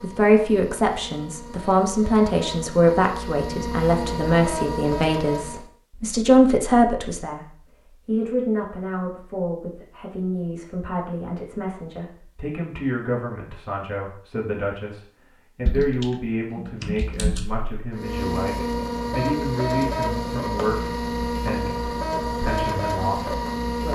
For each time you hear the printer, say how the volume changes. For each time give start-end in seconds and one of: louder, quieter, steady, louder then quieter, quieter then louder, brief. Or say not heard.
0.0-5.7 louder
17.9-23.8 steady.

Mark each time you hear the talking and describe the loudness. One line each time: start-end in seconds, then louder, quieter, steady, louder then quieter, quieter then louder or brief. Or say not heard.
0.0-23.8 quieter.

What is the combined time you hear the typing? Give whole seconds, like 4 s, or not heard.
2 s.